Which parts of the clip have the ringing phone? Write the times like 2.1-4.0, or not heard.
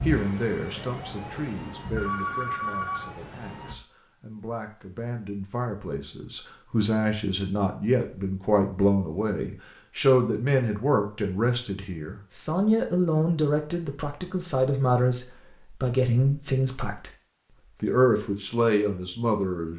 1.9-3.1.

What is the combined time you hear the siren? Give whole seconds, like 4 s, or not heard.
4 s.